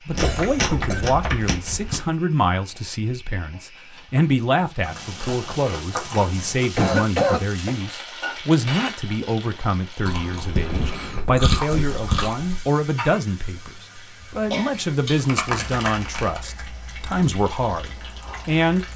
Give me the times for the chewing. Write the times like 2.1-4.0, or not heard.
0.1-2.1, 4.8-6.7, 10.1-12.7, 14.7-16.4.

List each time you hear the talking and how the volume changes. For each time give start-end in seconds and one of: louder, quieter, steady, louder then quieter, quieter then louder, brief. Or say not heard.
0.1-18.9 steady.